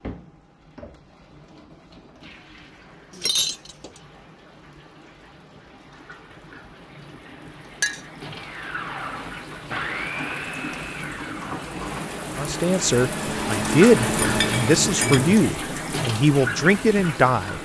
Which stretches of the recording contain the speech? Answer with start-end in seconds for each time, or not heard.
12.3-17.6.